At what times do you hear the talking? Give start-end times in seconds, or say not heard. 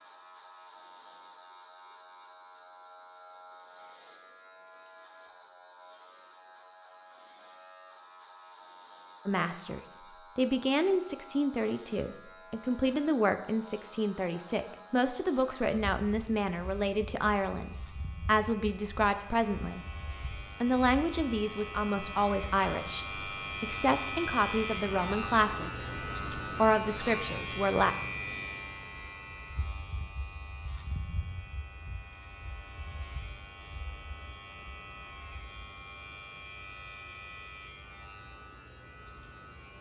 9.2-19.9, 20.6-27.9.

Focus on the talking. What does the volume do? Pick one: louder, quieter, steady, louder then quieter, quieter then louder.
steady.